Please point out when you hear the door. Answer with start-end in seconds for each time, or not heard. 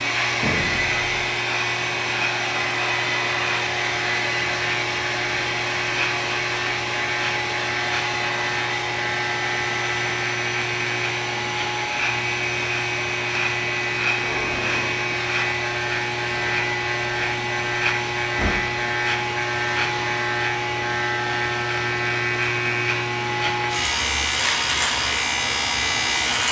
0.4-1.0, 14.2-15.1, 18.2-18.7.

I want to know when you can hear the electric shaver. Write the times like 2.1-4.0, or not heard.
0.0-26.4.